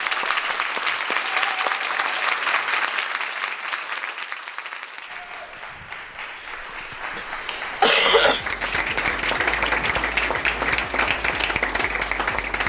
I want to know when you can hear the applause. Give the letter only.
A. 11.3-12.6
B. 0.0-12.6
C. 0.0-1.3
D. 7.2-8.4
B.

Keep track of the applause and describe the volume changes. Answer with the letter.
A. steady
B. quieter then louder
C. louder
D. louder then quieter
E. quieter
B.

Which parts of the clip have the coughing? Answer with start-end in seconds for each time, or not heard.
7.2-8.4.